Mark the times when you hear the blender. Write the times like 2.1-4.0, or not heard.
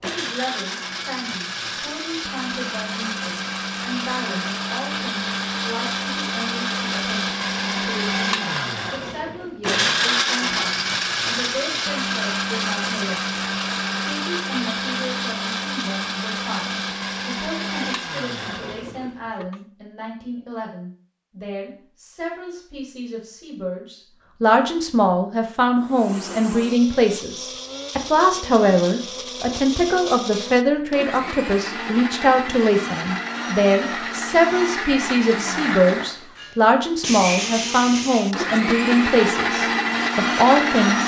0.0-19.6, 25.8-41.0.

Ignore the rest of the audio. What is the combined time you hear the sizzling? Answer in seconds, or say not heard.
not heard.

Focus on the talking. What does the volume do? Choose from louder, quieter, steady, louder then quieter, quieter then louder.
louder.